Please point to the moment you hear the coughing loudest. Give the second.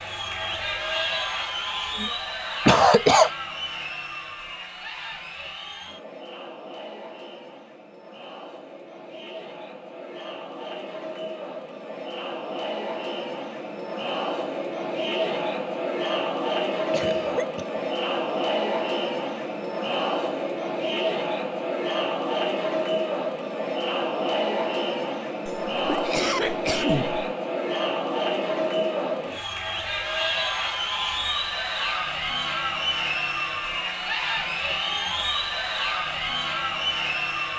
3 s.